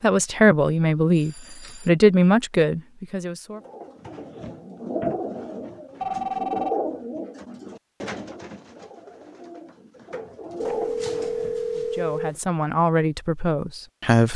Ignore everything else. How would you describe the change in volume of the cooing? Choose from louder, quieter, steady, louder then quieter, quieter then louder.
quieter then louder.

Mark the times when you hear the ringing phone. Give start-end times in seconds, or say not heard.
1.1-1.9, 6.0-6.8, 10.6-12.4.